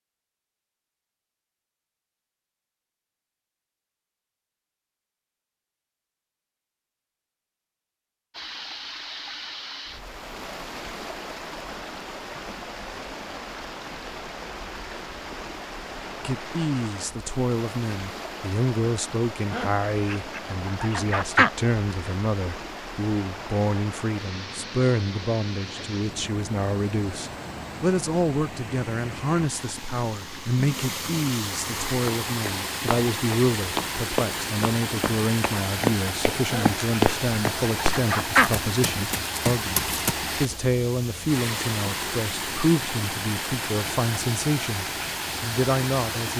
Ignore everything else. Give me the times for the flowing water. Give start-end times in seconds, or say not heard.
8.3-46.3.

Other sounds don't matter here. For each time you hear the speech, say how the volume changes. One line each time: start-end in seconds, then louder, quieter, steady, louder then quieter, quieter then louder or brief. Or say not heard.
16.2-46.3 steady.